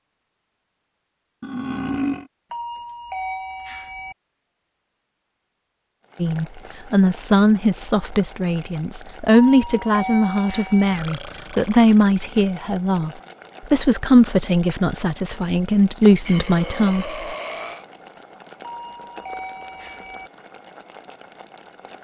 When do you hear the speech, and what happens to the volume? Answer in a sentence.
You can hear the speech from 6.2 to 17.2 s, at a steady volume.